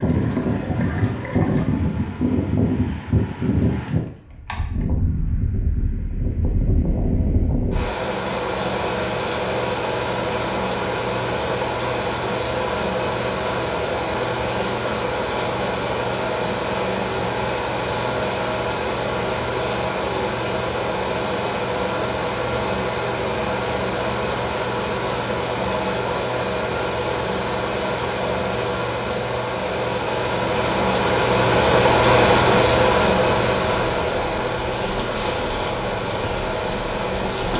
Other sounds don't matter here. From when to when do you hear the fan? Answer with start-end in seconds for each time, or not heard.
0.0-37.5.